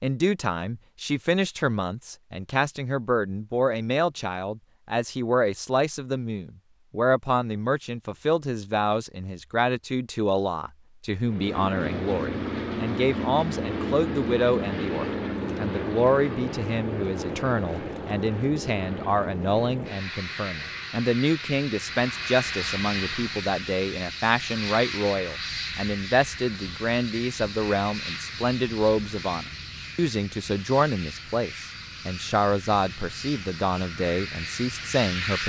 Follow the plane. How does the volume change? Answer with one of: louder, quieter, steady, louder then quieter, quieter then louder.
quieter.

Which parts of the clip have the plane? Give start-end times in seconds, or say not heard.
11.2-35.4.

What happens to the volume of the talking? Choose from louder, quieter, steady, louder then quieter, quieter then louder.
steady.